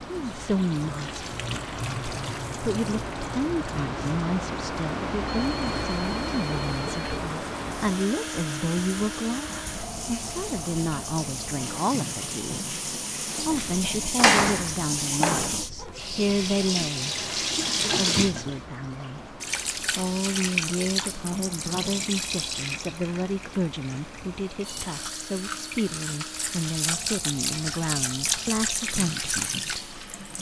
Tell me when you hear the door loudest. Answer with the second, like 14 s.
14 s.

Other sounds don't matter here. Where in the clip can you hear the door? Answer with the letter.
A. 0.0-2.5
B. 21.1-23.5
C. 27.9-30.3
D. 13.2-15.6
D.